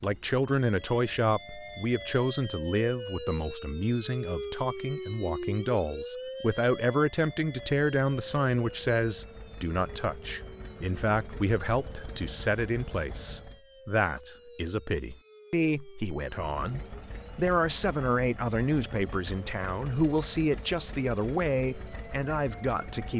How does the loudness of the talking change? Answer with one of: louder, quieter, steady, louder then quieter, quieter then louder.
steady.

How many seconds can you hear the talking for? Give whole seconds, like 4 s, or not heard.
23 s.